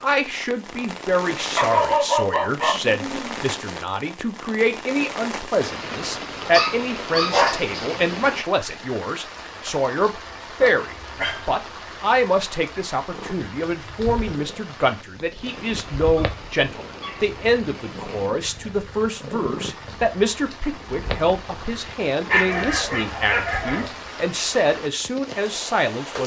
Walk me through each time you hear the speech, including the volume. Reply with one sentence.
The speech can be heard from 0.0 to 26.2 s, at a steady volume.